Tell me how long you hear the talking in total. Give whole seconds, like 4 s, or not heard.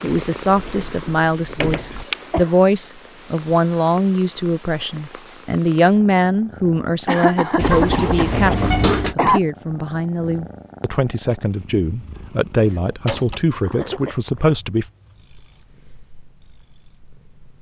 15 s.